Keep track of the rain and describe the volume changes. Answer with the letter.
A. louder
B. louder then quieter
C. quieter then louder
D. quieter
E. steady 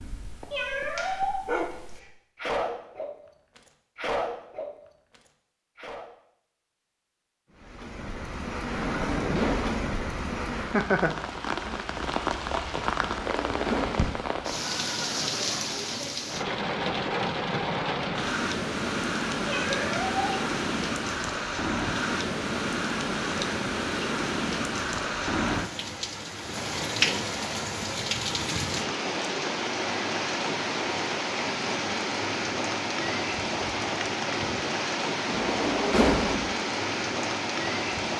E.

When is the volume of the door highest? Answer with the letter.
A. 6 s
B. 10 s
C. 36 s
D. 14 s
C.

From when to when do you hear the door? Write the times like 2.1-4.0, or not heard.
8.7-9.8, 13.0-14.2, 35.2-36.5.